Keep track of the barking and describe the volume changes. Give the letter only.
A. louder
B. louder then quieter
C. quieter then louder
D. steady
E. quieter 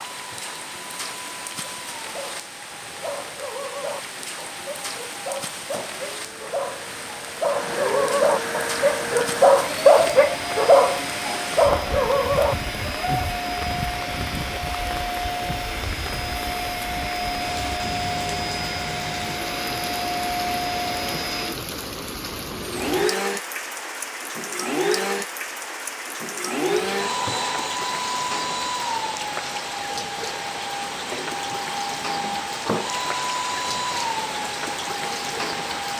A.